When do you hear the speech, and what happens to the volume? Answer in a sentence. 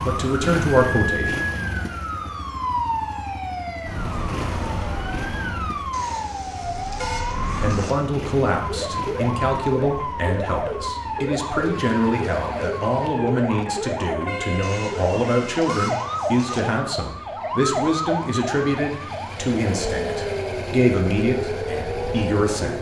The speech can be heard briefly from 0.0 to 1.4 s; and from 7.5 to 22.7 s, at a steady volume.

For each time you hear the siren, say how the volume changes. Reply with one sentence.
You can hear the siren from 0.0 to 22.7 s, at a steady volume.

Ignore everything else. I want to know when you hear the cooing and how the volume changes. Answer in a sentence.
You can't hear the cooing here.